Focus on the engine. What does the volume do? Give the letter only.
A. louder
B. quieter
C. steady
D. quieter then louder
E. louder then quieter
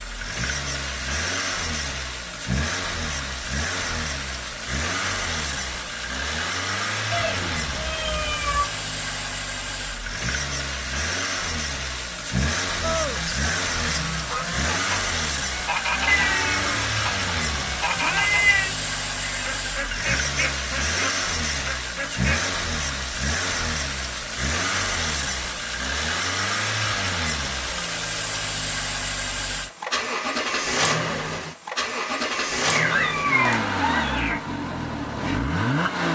C.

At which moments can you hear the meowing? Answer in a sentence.
The meowing can be heard from 7.1 to 8.7 s, from 16.1 to 18.8 s and from 32.7 to 34.4 s.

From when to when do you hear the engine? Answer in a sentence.
You can hear the engine from 0.0 to 36.0 s.